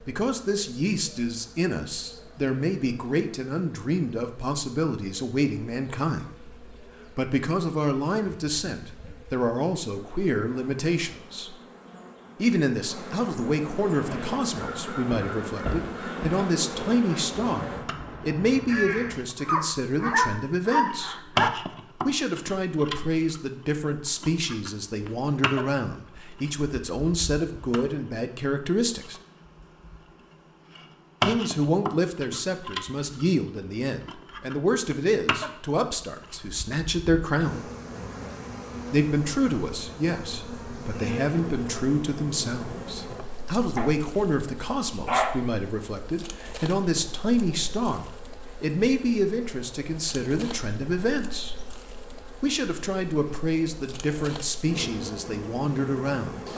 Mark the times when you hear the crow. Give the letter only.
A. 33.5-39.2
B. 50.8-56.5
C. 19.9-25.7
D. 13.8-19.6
D.